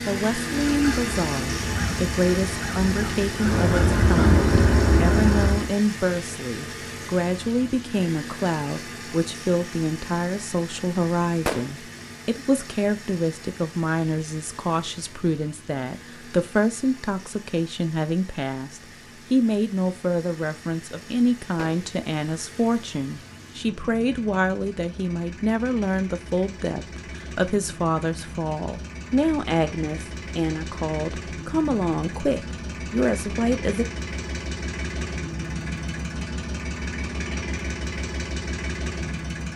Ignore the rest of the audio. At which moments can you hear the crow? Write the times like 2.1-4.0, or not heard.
0.5-5.7.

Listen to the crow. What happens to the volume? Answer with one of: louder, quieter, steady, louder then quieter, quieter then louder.
louder.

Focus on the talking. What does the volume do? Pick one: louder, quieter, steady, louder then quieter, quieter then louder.
steady.